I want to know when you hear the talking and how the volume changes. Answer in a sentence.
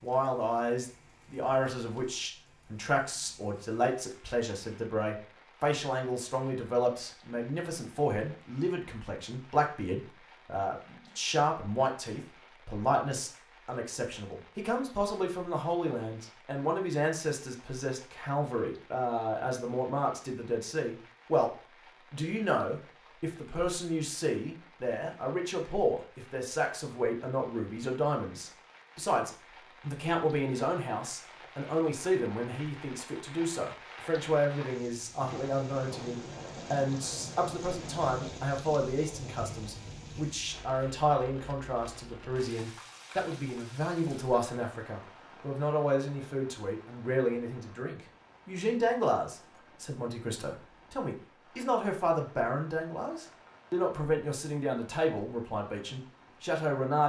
You can hear the talking from 0.0 to 21.5 s, at a steady volume; and from 22.1 to 57.0 s, at a steady volume.